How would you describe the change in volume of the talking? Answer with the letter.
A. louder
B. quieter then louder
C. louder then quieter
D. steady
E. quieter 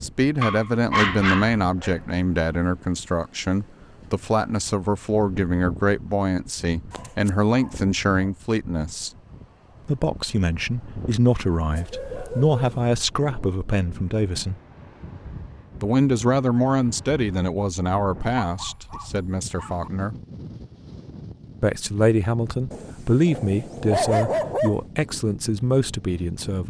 D.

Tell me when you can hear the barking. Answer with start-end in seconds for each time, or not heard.
0.4-1.9, 6.9-8.2, 11.7-12.8, 18.4-19.9, 22.7-24.8.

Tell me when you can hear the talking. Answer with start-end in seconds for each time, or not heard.
0.0-9.1, 9.8-14.6, 15.8-20.1, 21.6-26.6.